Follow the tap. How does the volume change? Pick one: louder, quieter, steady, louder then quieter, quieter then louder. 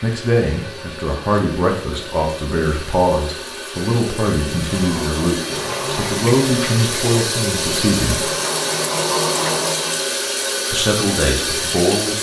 louder.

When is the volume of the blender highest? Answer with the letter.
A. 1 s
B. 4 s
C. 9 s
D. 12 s
C.